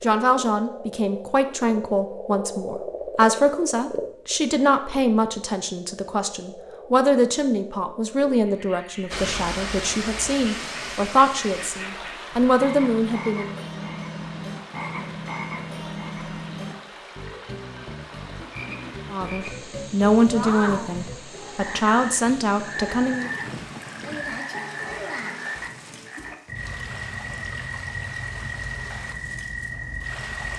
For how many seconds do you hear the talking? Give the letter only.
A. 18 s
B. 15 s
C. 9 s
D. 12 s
A.